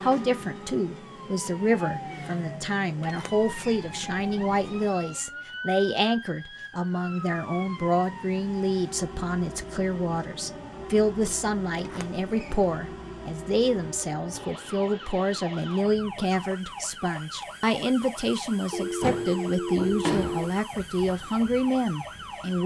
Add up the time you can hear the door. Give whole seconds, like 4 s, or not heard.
4 s.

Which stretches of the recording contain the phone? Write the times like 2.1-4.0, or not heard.
18.7-20.6.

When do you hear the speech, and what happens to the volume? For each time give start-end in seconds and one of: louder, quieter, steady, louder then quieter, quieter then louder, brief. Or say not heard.
0.0-22.6 steady.